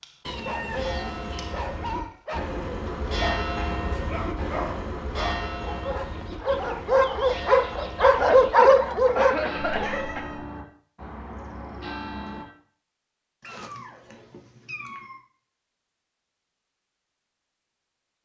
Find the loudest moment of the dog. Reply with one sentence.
The loudest moment of the dog is at 9 seconds.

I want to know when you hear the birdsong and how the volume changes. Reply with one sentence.
You can't hear the birdsong here.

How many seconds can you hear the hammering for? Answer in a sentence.
The hammering can't be heard in this clip.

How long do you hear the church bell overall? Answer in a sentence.
You can hear the church bell for 12 seconds altogether.